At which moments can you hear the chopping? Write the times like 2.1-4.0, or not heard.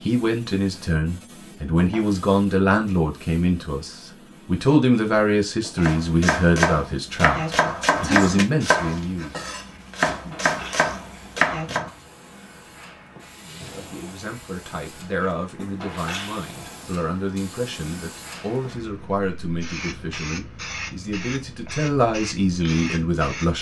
5.8-11.9.